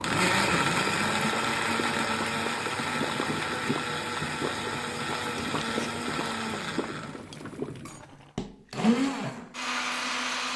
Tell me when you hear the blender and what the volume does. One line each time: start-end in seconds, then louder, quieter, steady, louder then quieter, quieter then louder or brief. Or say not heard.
0.0-10.5 quieter then louder.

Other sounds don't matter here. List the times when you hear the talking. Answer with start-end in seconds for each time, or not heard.
not heard.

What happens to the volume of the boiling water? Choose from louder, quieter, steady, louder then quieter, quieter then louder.
steady.